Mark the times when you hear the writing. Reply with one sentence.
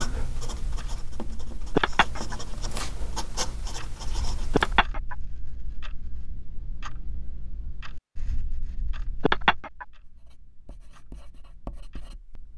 You can hear the writing from 0.0 to 4.8 s and from 10.1 to 12.5 s.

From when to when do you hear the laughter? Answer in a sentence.
The laughter can be heard from 1.8 to 2.4 s, from 4.5 to 5.2 s and from 9.2 to 9.8 s.